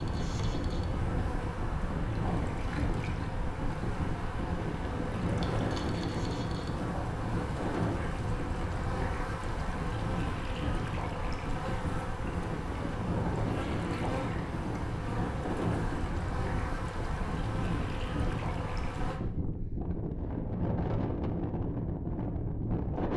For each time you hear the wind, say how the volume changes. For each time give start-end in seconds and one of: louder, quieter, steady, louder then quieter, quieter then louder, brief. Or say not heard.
0.0-23.1 steady.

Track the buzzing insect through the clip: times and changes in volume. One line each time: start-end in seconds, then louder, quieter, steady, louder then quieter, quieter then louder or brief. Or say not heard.
0.0-19.2 steady.